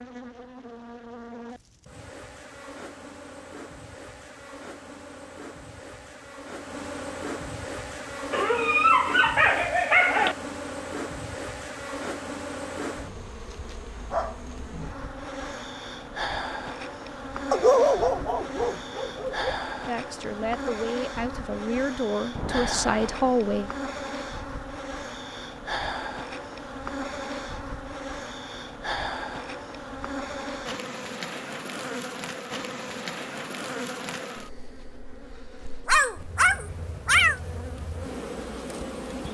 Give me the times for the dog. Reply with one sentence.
You can hear the dog from 8.3 to 10.3 s, from 17.5 to 19.5 s and from 35.9 to 37.4 s.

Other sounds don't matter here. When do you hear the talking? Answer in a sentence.
You can hear the talking from 19.9 to 23.7 s.